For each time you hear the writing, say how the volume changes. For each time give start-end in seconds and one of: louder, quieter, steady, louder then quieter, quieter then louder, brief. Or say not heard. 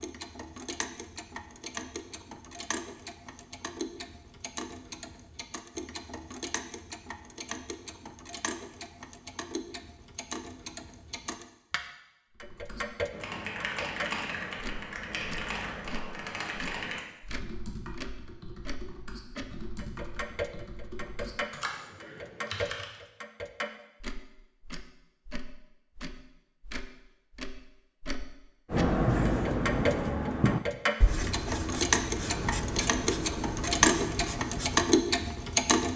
28.7-35.4 quieter.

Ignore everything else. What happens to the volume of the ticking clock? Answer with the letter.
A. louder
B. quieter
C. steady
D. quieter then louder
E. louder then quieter
A.